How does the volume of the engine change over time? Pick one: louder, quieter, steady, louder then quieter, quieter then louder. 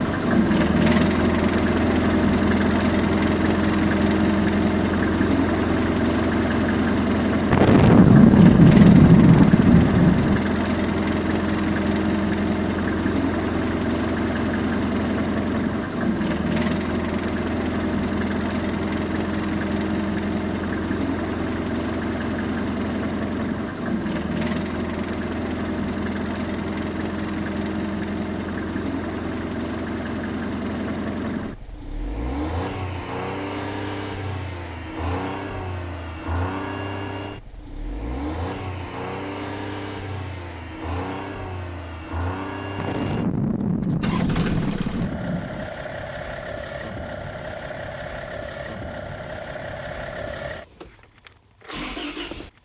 quieter.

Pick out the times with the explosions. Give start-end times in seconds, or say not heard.
7.5-10.4, 42.8-45.7.